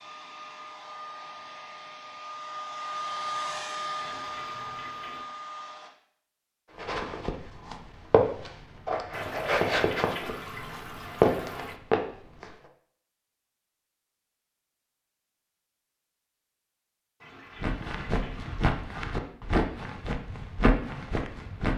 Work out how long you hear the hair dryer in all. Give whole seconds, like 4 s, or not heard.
6 s.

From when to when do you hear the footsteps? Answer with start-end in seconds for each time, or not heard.
6.8-12.6, 17.6-21.7.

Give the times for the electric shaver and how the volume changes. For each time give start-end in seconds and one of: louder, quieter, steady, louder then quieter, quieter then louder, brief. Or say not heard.
not heard.